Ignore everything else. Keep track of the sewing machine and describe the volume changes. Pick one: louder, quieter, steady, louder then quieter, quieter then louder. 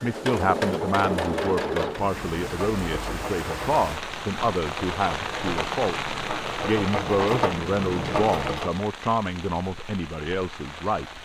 quieter then louder.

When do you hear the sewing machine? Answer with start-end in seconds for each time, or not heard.
0.0-8.8.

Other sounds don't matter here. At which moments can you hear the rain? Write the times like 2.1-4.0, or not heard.
1.9-11.2.